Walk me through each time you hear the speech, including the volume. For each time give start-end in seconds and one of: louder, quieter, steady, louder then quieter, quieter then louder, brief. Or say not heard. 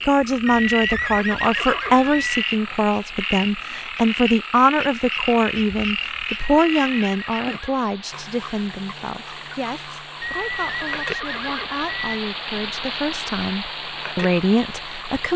0.1-15.3 quieter then louder.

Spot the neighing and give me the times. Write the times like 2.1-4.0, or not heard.
0.5-2.5, 6.5-7.8, 10.2-12.2.